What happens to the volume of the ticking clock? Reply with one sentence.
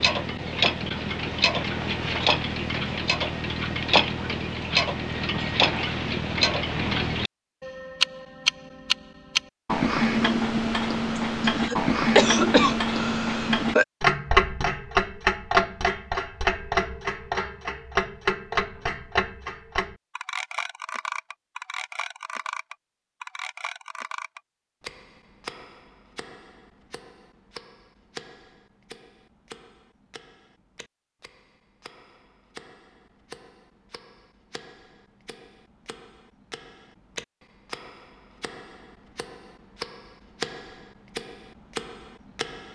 The loudness of the ticking clock goes down, then up.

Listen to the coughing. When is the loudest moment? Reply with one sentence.
The volume of the coughing peaks at 12 seconds.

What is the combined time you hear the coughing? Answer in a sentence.
You can hear the coughing for 3 seconds altogether.